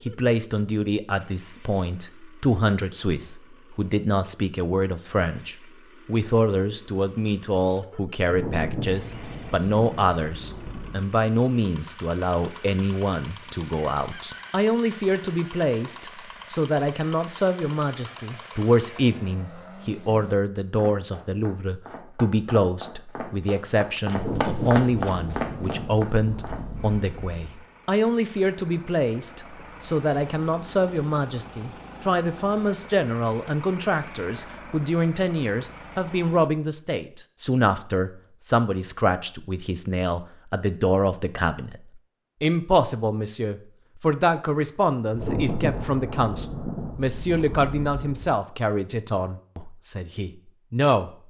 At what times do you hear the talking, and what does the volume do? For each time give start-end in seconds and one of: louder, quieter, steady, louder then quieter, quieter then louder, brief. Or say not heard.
0.1-41.8 steady
42.4-51.1 quieter.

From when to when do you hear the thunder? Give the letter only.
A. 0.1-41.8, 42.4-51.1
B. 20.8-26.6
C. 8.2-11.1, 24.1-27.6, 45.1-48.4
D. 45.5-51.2
C.